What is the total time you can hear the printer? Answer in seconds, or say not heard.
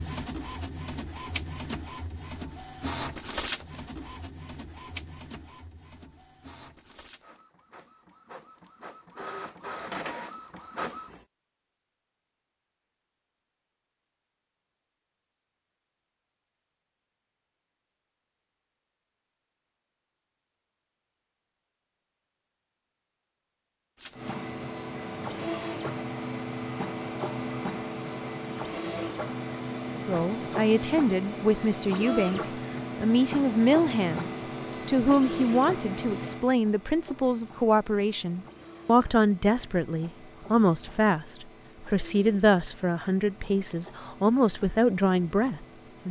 33 s.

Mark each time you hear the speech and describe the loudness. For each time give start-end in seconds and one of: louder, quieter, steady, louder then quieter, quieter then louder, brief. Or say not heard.
29.9-46.0 steady.